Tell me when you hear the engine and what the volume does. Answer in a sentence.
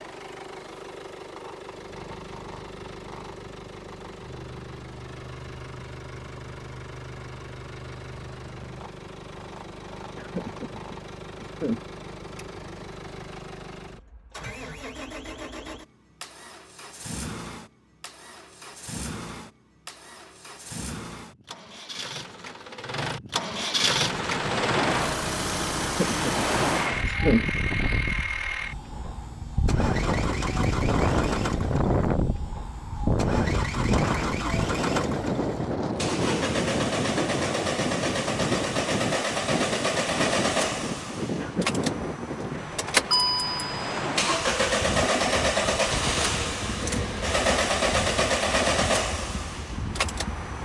The engine can be heard from 0.0 to 50.6 s, getting louder.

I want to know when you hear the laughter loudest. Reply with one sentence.
The volume of the laughter peaks at 27 seconds.